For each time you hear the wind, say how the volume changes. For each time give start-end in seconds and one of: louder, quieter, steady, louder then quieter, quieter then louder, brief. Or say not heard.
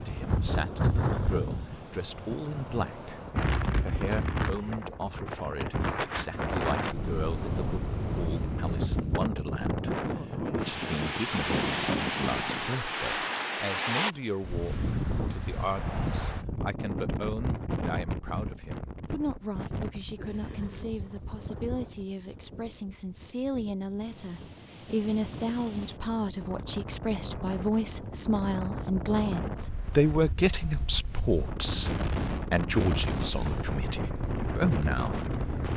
0.0-35.7 quieter then louder.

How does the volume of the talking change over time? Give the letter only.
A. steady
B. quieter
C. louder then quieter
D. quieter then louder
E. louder
E.